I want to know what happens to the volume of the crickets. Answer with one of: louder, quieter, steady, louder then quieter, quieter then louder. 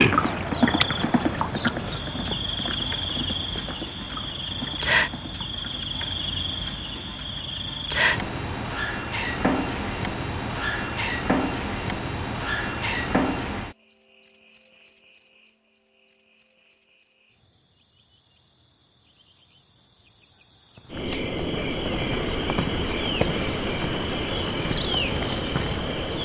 quieter then louder.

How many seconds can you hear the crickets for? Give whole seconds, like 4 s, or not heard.
26 s.